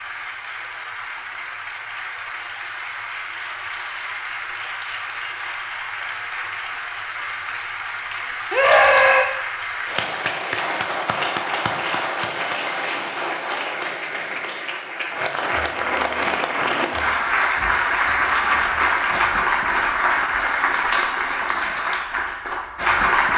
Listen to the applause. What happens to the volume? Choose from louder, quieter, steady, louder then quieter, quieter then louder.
louder.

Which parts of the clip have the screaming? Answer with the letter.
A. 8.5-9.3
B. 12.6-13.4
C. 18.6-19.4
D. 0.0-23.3
A.